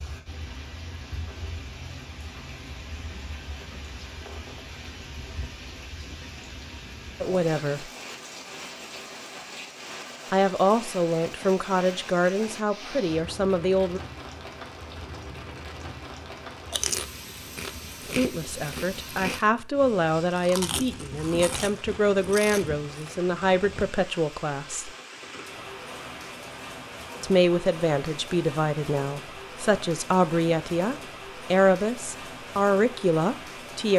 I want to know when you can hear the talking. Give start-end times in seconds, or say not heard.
7.2-7.9, 10.3-14.0, 18.1-24.9, 27.2-33.9.